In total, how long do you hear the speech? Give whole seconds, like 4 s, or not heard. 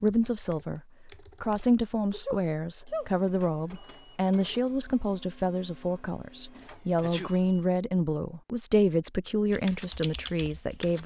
11 s.